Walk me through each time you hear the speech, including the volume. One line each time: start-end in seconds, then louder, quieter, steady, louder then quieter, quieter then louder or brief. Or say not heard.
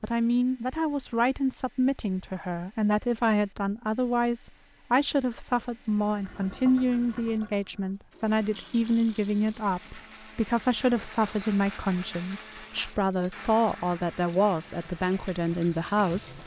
0.0-16.4 steady.